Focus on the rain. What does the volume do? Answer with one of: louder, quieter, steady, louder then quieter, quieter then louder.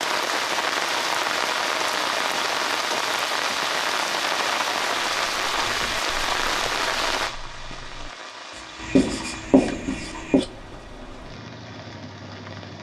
quieter.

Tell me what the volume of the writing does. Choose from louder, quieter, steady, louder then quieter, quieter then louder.
louder.